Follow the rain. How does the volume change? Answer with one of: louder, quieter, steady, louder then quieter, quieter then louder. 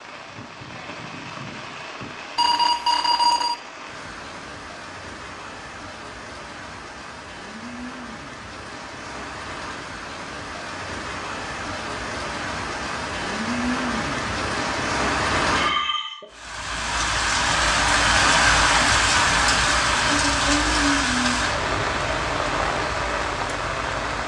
louder.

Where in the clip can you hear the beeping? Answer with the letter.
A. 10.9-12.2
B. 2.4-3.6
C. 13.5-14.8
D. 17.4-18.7
B.